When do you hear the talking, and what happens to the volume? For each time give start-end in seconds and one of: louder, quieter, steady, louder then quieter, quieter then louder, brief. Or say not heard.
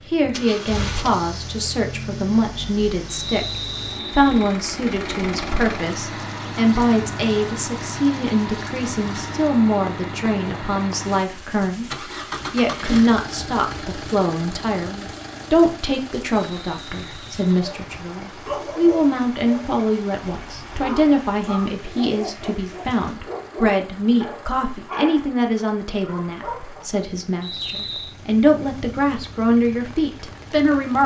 0.1-31.0 steady.